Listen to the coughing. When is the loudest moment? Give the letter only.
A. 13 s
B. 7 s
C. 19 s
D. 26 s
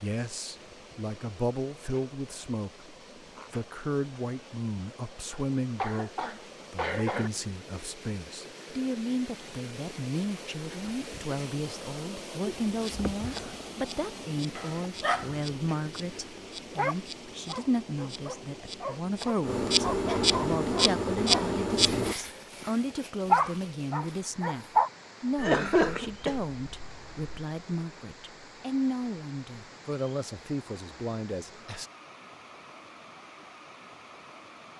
D.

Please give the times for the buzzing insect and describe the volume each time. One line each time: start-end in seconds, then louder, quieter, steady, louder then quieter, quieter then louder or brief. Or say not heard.
12.6-22.1 louder.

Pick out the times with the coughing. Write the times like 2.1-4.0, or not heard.
5.3-7.3, 12.4-13.5, 25.4-27.3.